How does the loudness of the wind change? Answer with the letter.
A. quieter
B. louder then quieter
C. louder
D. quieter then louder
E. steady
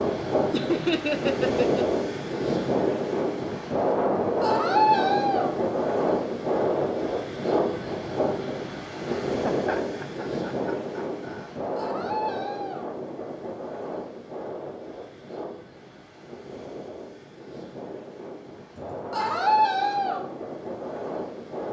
A.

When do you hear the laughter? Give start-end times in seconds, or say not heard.
0.5-1.9, 9.1-11.5, 18.8-19.4.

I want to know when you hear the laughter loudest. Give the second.
1 s.